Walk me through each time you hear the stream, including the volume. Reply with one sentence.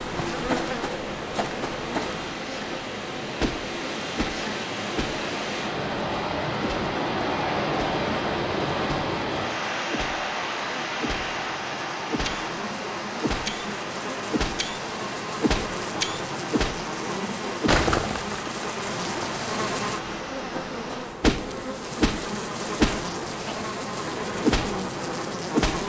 The stream can be heard from 0.0 to 21.1 s, getting louder then quieter.